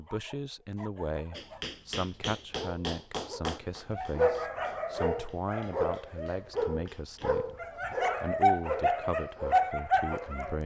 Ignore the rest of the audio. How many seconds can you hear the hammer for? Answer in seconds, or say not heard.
6 s.